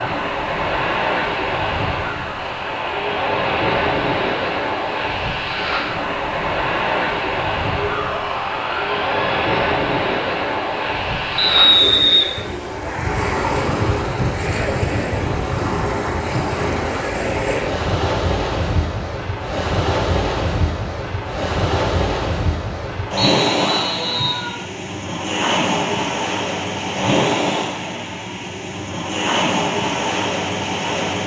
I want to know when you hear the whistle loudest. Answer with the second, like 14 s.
12 s.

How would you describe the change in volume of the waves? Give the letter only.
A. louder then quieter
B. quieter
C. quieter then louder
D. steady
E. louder
D.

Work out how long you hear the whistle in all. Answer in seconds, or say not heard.
2 s.